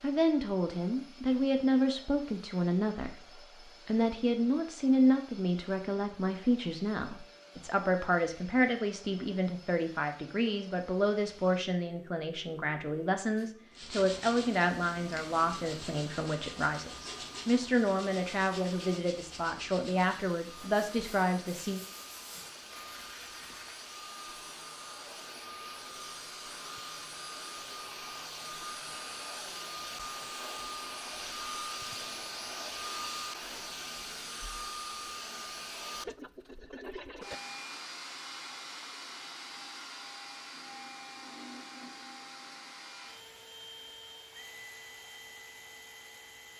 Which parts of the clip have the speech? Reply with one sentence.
The speech can be heard from 0.0 to 3.2 s and from 3.9 to 21.8 s.